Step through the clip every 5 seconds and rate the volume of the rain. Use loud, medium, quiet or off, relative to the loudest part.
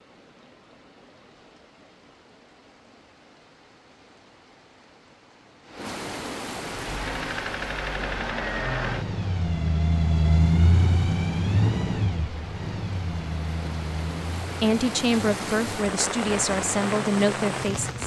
quiet, medium, medium, loud.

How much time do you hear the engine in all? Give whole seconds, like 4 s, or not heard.
11 s.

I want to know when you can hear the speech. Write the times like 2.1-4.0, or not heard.
14.6-18.0.